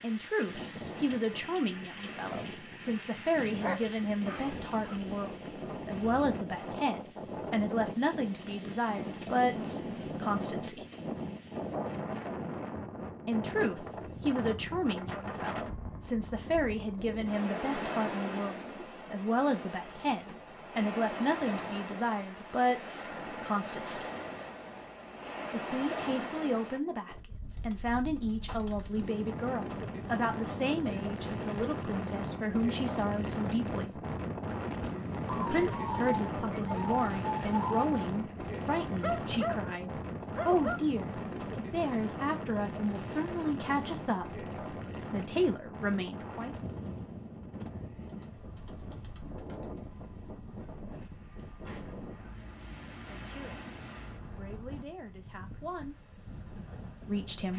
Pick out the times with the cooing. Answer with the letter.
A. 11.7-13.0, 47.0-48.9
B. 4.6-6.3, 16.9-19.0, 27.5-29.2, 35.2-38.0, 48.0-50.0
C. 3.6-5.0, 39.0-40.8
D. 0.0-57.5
B.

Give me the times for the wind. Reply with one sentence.
You can hear the wind from 0.0 to 57.5 s.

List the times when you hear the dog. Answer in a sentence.
You can hear the dog from 3.6 to 5.0 s and from 39.0 to 40.8 s.